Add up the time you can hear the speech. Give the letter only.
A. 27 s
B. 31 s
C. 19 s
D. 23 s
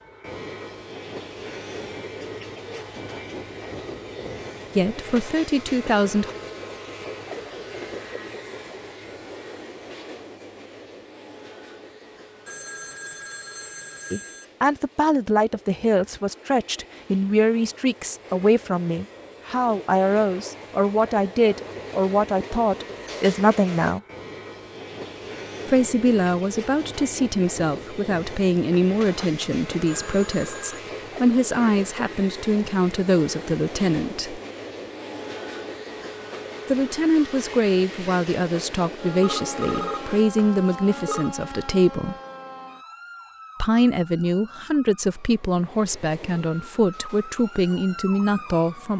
B.